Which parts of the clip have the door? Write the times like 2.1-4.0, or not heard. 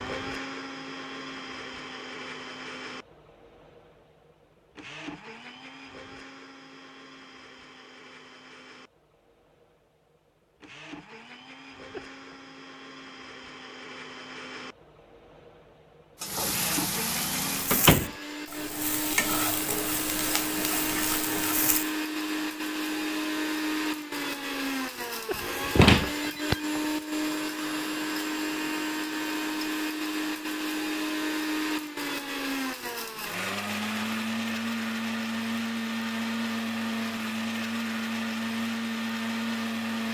17.7-18.1, 25.8-26.6.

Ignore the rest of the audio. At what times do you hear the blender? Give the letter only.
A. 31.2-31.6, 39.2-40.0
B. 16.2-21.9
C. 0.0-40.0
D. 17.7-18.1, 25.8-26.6
C.